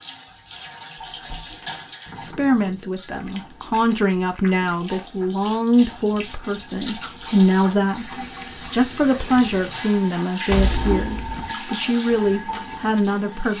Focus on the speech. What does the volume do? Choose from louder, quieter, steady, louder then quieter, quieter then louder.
steady.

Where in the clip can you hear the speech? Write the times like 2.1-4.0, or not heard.
2.2-13.5.